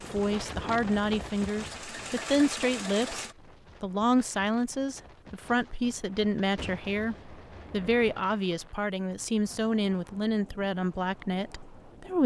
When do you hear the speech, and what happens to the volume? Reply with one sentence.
You can hear the speech from 0.1 to 12.2 s, at a steady volume.